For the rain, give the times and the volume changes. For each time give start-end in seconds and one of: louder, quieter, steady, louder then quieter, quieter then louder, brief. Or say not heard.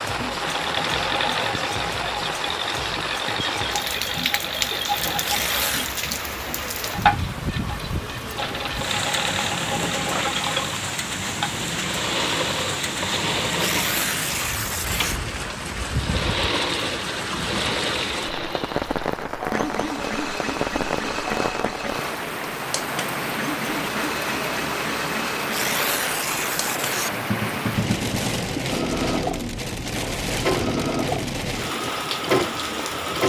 0.0-33.2 steady.